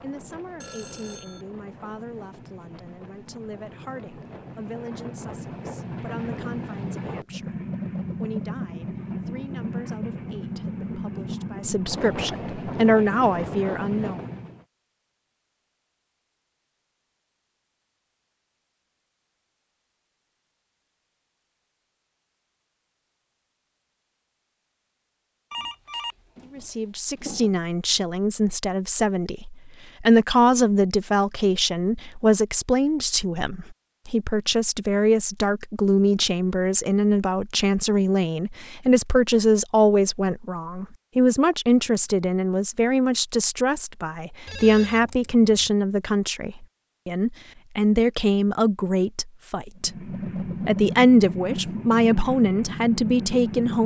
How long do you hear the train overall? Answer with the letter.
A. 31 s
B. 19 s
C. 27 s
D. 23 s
B.